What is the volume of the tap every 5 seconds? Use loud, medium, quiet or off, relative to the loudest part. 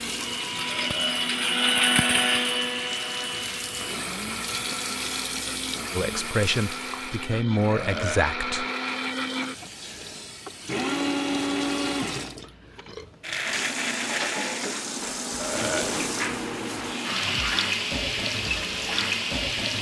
medium, medium, medium, loud.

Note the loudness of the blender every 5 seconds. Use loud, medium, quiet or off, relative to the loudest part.
loud, medium, loud, medium.